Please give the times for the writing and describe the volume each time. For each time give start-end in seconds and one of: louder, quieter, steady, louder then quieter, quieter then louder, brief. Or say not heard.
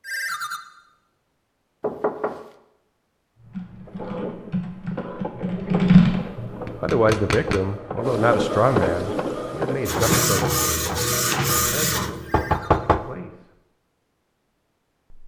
not heard.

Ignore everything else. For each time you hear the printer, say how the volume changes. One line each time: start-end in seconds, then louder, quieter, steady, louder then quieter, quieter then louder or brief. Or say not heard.
3.9-12.5 louder.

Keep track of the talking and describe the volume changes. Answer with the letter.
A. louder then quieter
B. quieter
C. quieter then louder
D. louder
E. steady
B.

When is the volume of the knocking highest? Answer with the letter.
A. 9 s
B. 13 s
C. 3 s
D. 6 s
B.